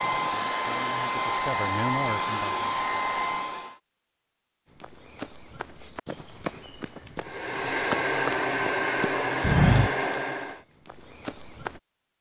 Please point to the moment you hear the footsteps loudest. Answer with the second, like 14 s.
10 s.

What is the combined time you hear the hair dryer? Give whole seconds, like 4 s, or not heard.
7 s.